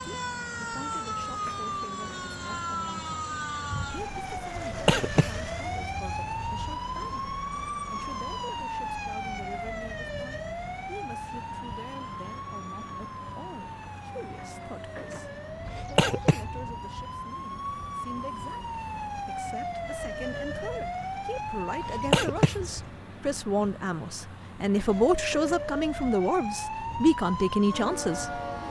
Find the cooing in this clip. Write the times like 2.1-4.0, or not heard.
not heard.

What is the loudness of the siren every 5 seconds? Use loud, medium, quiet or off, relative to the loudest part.
loud, loud, medium, loud, loud, loud.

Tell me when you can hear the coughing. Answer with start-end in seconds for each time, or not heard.
4.5-6.8, 15.7-16.6, 21.8-22.9.